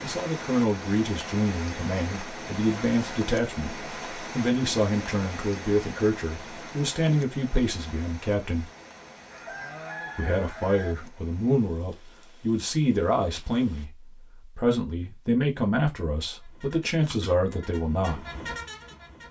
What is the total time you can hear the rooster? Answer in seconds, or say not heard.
2 s.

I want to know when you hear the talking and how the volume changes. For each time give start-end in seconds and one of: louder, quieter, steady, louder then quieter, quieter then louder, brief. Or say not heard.
0.0-8.7 steady
10.2-18.2 steady.